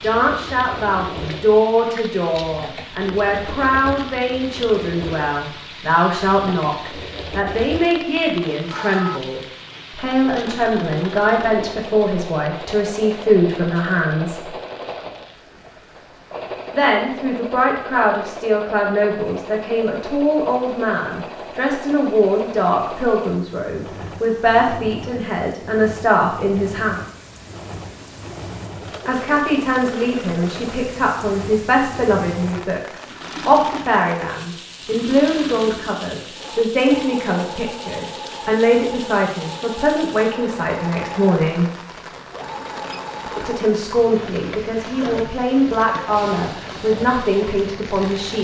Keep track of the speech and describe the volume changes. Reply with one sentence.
The volume of the speech stays about the same.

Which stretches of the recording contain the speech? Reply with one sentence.
You can hear the speech from 0.0 to 14.5 s, from 16.7 to 27.0 s, from 29.1 to 41.6 s and from 43.4 to 48.3 s.